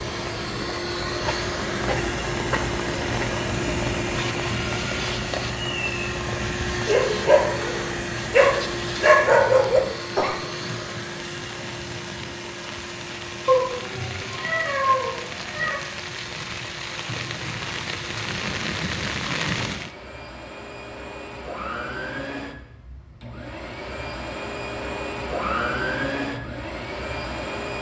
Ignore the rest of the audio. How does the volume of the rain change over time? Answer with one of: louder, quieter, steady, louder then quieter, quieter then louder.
quieter then louder.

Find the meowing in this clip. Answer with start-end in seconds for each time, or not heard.
13.4-15.8.